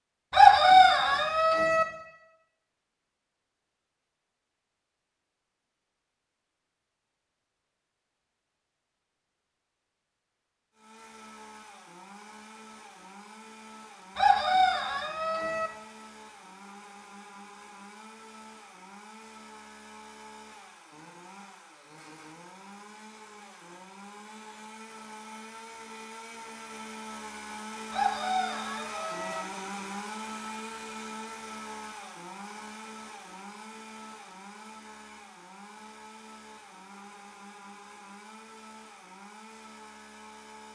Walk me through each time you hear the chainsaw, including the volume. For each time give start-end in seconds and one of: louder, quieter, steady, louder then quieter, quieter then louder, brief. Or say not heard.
10.7-40.6 louder then quieter.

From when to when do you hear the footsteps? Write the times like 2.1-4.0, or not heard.
not heard.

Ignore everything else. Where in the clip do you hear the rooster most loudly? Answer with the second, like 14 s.
1 s.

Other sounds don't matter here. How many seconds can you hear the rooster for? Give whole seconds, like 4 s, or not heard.
5 s.